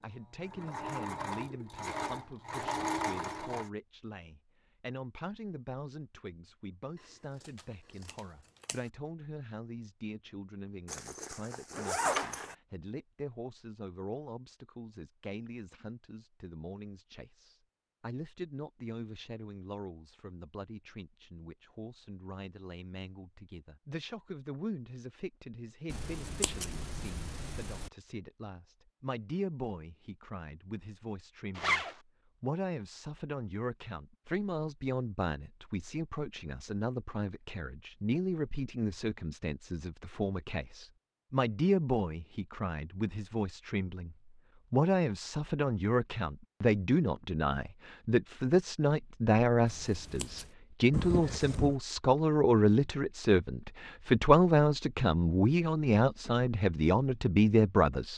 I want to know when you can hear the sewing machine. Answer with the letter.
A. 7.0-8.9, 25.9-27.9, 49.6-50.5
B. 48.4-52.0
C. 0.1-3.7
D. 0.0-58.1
C.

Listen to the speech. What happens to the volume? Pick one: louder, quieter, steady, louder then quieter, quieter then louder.
louder.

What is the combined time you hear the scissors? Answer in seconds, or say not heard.
5 s.